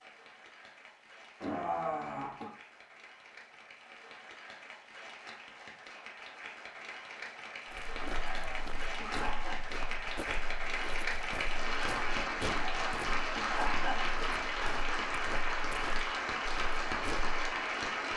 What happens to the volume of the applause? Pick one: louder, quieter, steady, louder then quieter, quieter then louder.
louder.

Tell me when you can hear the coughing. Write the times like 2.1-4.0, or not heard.
1.4-2.5, 8.0-9.6, 12.4-14.1.